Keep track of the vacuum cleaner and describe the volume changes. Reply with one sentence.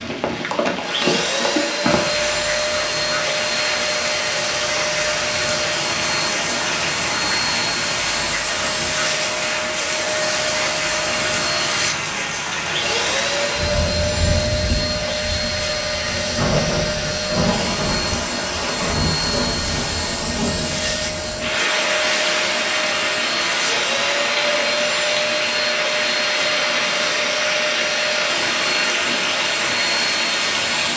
The volume of the vacuum cleaner stays about the same.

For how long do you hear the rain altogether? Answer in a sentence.
The rain can be heard for 31 seconds in total.